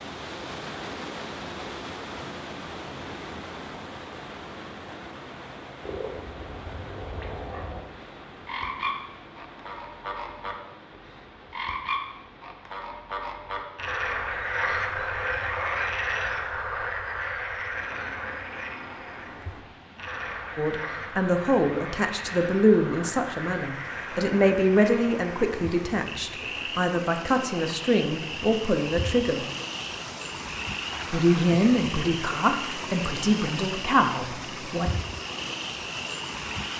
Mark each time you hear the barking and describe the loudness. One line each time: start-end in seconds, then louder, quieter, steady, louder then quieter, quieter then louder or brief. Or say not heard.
not heard.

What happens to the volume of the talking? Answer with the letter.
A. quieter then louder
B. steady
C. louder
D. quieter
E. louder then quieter
B.